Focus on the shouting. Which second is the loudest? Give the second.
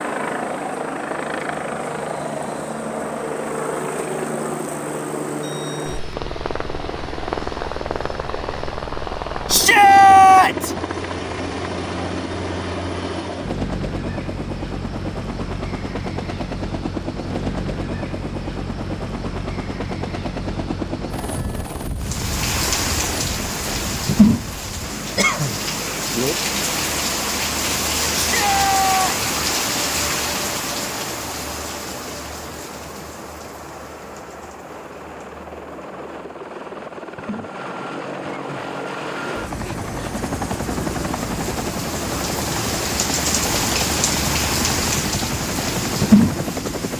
10 s.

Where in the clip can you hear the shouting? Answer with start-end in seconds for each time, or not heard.
9.4-10.8, 28.2-29.2.